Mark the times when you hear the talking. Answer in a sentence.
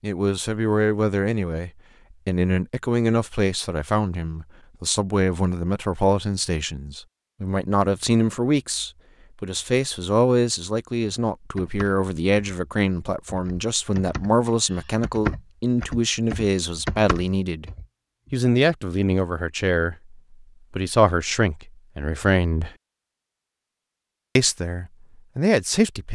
You can hear the talking from 0.0 to 17.7 s, from 18.3 to 22.7 s and from 24.4 to 26.1 s.